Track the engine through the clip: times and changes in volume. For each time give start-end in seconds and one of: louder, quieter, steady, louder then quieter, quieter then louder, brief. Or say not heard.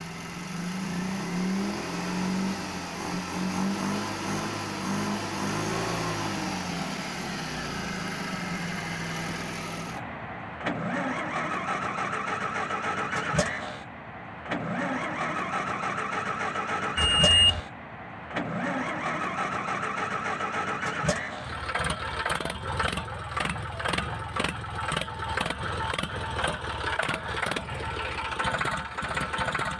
0.0-29.7 steady.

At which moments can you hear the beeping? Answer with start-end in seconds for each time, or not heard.
16.9-17.6.